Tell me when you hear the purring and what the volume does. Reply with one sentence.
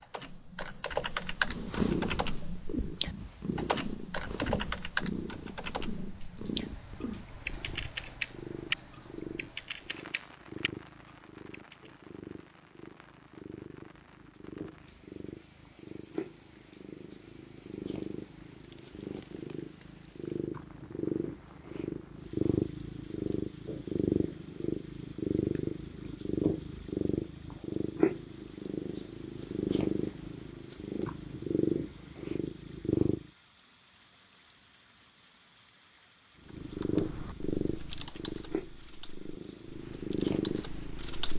You can hear the purring from 1.4 to 33.3 s, getting quieter then louder; and from 36.5 to 41.3 s, getting quieter then louder.